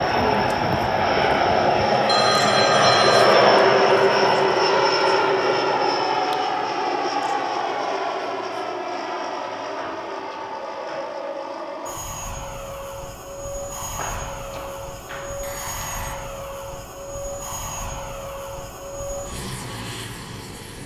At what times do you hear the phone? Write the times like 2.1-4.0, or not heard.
2.0-3.2, 9.8-11.1, 13.9-16.1.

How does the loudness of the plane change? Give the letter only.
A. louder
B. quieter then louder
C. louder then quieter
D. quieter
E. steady
D.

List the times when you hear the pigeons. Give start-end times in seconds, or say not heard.
0.0-1.8.